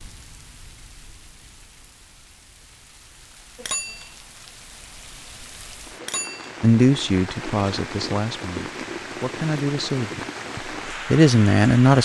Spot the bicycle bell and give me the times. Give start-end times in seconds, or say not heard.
3.5-4.2, 6.0-6.6.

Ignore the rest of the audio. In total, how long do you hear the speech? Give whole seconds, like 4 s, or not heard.
5 s.